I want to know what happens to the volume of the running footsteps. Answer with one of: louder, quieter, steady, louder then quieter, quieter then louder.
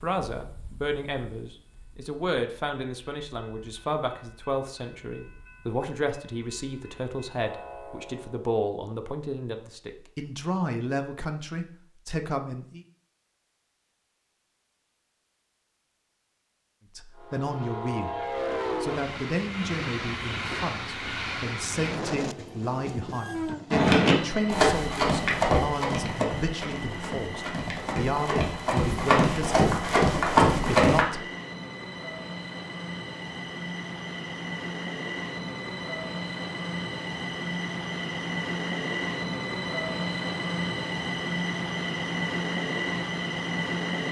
quieter then louder.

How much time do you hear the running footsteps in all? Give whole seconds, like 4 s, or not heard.
7 s.